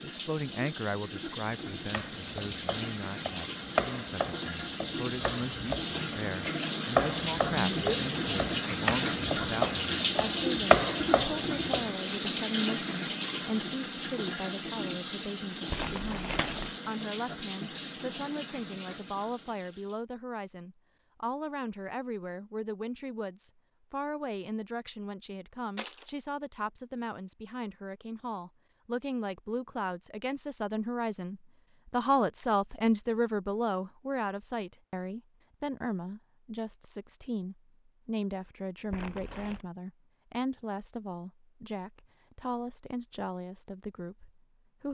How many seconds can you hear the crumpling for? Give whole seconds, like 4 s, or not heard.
2 s.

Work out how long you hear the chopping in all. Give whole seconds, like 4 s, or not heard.
10 s.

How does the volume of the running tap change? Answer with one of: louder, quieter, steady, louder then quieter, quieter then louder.
louder then quieter.